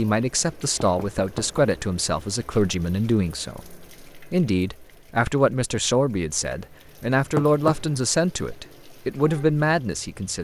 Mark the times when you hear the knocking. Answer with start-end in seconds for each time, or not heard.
0.9-1.7, 7.3-8.0.